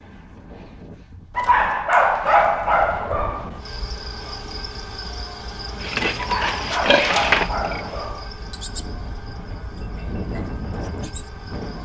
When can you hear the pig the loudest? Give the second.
7 s.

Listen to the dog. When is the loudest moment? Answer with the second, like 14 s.
2 s.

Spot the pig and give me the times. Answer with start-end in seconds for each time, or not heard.
5.8-11.3.